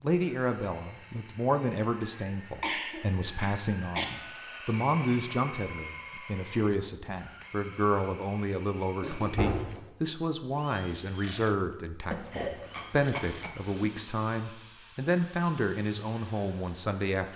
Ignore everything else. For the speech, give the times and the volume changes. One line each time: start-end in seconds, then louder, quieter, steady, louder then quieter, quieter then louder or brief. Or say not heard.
0.0-17.3 steady.